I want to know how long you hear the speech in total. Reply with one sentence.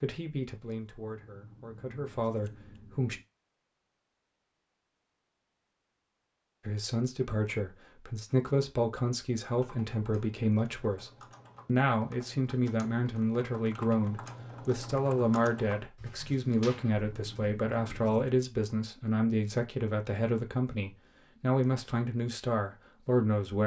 You can hear the speech for 20 seconds altogether.